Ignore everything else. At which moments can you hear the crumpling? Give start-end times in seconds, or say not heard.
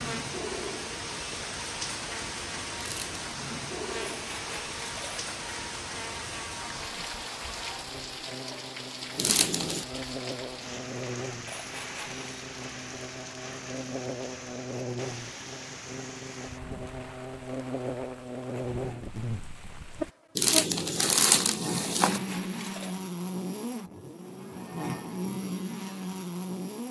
2.8-3.2, 9.2-9.8, 20.4-22.2.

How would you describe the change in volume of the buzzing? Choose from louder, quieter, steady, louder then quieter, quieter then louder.
louder.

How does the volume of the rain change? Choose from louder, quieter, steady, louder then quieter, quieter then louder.
quieter.